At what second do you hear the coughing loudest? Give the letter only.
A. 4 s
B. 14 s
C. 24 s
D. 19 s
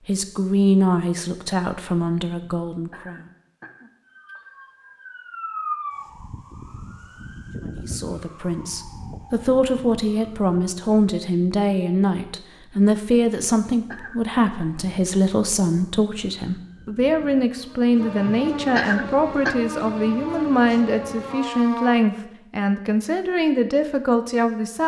D.